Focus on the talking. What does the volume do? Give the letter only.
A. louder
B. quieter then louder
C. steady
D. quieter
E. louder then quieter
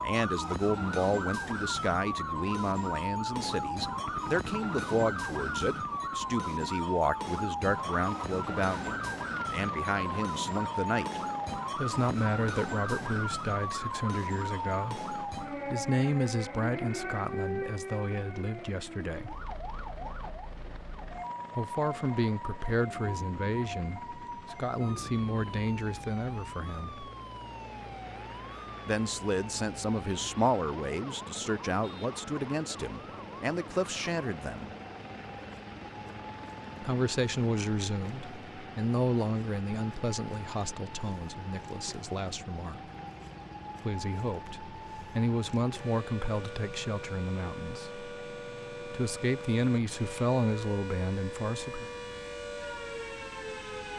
C.